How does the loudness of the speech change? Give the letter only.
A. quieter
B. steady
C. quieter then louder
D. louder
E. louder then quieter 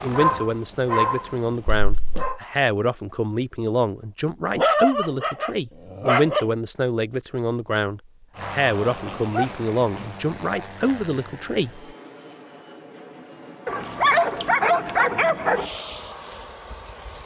B.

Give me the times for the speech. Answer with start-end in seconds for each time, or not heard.
0.0-11.9.